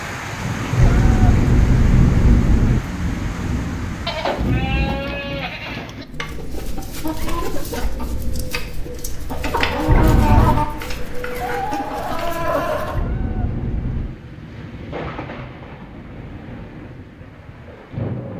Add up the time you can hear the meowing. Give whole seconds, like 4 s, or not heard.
4 s.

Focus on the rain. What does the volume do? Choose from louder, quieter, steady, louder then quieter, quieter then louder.
quieter.